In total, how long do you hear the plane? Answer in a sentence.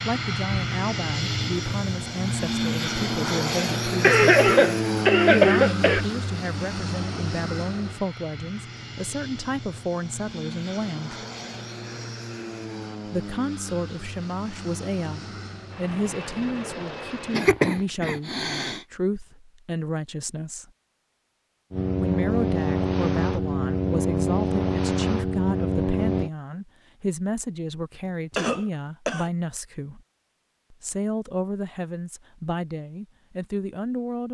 You can hear the plane for 22 seconds altogether.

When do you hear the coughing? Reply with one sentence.
You can hear the coughing from 4.0 to 6.0 s, from 17.3 to 18.8 s and from 28.1 to 29.3 s.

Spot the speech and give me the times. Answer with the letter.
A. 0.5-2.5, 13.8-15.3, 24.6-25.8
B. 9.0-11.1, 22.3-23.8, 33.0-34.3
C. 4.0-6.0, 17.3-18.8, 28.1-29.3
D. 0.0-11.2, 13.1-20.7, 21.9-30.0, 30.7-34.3
D.